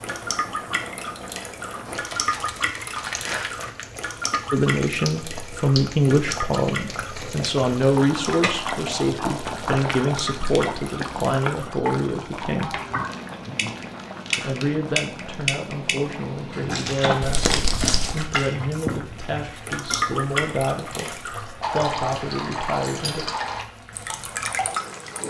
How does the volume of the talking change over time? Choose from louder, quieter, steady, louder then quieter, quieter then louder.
quieter.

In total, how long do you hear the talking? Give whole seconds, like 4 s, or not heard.
17 s.